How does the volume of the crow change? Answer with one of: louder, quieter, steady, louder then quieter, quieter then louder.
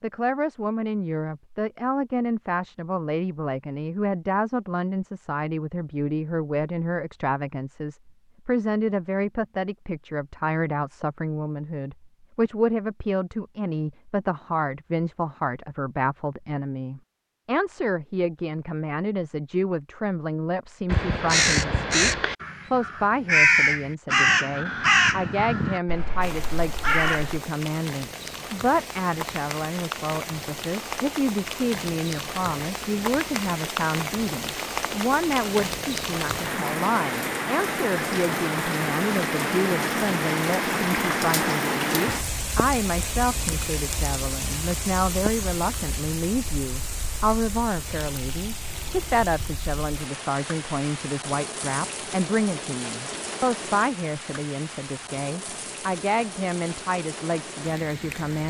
quieter.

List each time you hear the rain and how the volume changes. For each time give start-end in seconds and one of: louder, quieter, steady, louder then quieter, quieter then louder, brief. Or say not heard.
26.2-58.4 louder then quieter.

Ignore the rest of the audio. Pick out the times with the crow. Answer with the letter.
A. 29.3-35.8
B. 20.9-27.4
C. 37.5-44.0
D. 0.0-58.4
B.